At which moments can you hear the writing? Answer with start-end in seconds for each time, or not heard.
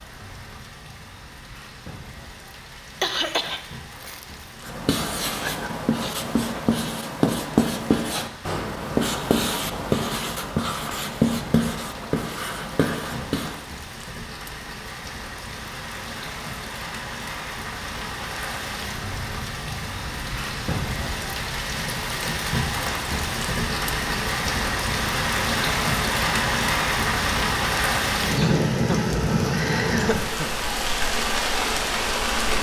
4.7-13.7.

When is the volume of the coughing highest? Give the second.
3 s.